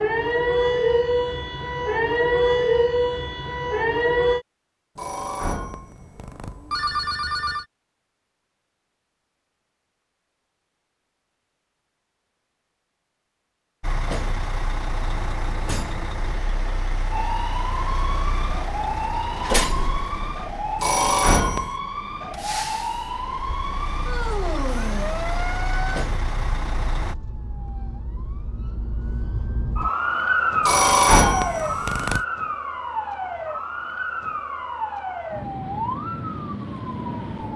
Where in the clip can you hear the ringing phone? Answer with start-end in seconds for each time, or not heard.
5.0-7.7, 20.8-21.7, 30.6-32.2.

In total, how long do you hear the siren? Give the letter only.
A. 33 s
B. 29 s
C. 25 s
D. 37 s
C.